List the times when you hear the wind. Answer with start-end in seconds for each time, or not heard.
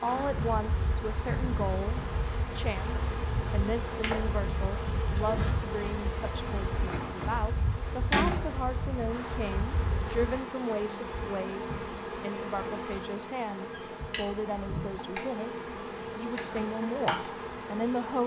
0.0-10.4.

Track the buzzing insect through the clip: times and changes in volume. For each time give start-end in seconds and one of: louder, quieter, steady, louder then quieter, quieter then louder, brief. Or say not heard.
0.0-18.2 steady.